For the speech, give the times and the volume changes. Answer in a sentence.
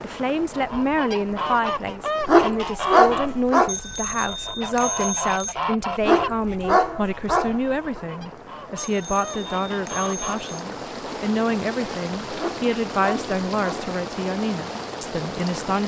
The speech can be heard from 0.0 to 15.8 s, at a steady volume.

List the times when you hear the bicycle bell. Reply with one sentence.
The bicycle bell can be heard from 3.6 to 5.5 s and from 8.8 to 10.7 s.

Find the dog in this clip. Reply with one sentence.
The dog can be heard from 2.2 to 3.8 s, from 6.0 to 8.0 s and from 12.3 to 13.9 s.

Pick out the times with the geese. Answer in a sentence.
The geese can be heard from 0.3 to 10.4 s.